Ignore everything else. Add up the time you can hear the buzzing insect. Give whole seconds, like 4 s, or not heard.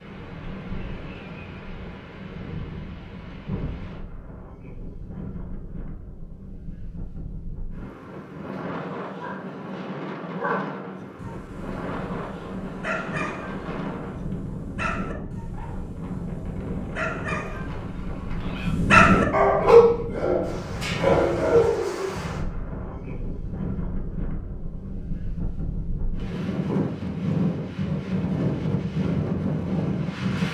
not heard.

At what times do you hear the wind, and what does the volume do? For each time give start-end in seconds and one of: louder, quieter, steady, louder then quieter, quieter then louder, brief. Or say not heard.
0.0-30.4 louder.